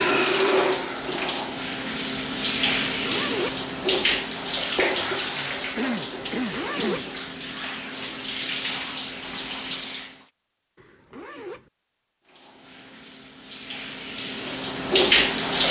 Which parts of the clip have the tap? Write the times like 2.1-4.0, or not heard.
0.0-10.2, 12.2-15.6.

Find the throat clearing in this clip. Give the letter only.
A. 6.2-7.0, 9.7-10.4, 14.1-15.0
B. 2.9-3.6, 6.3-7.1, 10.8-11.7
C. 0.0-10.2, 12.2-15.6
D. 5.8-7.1
D.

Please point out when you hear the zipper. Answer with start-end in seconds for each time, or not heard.
2.9-3.6, 6.3-7.1, 10.8-11.7.